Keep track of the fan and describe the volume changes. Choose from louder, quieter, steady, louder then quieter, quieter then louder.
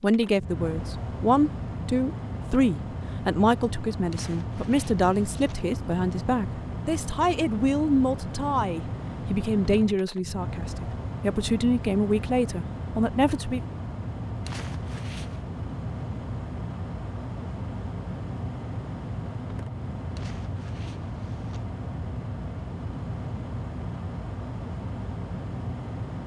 steady.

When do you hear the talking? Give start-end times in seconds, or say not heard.
0.0-13.6.